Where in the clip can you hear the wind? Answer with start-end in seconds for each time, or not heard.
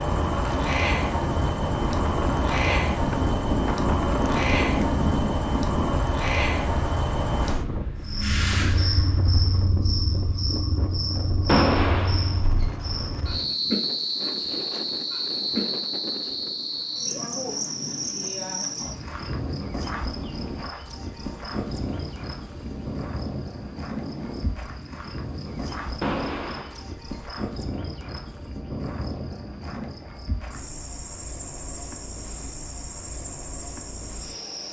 0.0-26.6.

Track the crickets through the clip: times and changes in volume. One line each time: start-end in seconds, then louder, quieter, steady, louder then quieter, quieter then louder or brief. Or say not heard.
0.0-34.6 quieter.